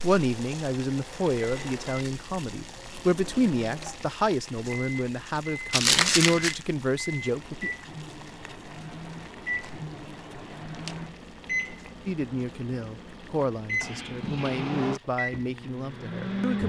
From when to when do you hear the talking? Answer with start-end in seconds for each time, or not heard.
0.0-7.7, 12.1-16.6.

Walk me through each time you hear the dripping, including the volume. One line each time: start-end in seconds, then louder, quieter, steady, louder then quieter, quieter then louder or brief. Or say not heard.
not heard.